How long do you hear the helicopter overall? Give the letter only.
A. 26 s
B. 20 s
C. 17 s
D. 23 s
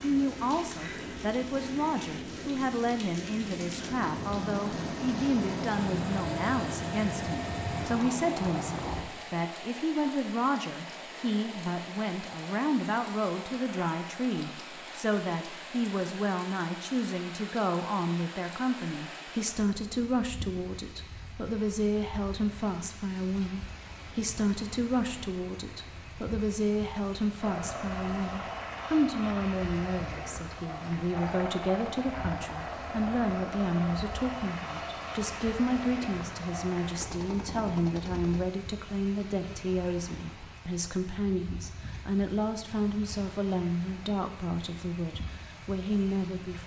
B.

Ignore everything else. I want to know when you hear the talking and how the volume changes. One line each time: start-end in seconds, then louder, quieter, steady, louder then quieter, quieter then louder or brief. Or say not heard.
0.0-46.6 steady.